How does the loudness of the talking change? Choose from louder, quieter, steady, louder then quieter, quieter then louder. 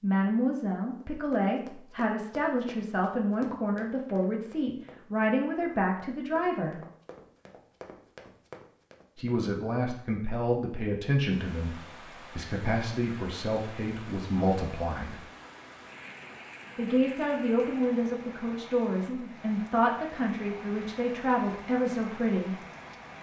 steady.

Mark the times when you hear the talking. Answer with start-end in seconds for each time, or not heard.
0.0-6.8, 9.2-15.2, 16.8-22.6.